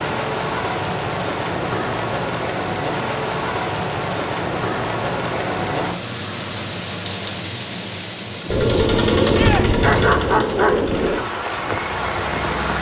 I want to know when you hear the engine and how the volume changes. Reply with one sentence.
You can hear the engine from 8.4 to 12.7 s, getting quieter.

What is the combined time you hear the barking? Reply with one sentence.
The barking can be heard for 3 seconds in total.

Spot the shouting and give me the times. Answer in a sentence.
You can hear the shouting from 9.2 to 9.7 s.